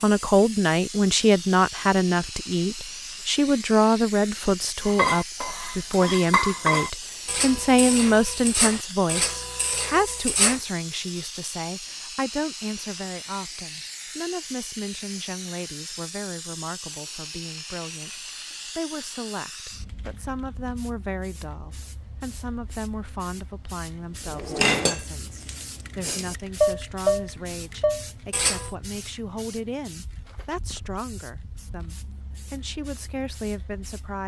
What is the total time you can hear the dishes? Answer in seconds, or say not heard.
10 s.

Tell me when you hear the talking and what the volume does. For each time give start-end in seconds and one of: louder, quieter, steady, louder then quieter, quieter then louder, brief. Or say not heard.
0.0-34.2 quieter.